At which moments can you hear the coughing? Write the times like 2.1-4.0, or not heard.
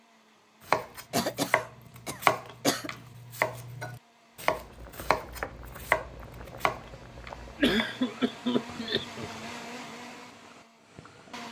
1.1-2.9, 7.6-9.3.